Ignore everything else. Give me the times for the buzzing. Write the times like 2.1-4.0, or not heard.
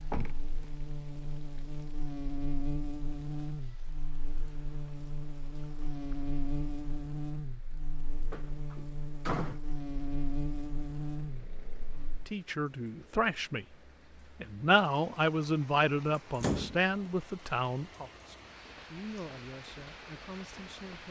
0.0-12.2.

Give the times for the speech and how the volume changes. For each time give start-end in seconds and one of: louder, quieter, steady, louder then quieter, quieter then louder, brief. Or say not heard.
12.2-13.8 brief
14.4-21.0 quieter.